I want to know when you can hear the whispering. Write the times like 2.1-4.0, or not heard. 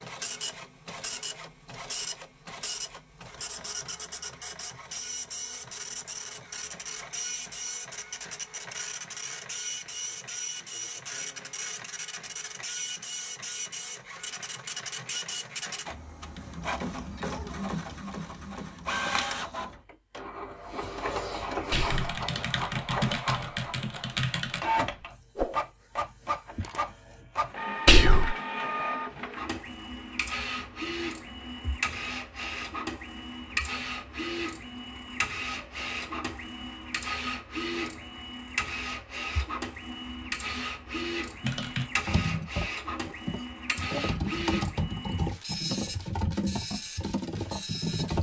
21.7-22.1, 27.9-28.4.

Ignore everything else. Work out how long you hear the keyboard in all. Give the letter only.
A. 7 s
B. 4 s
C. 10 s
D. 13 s
C.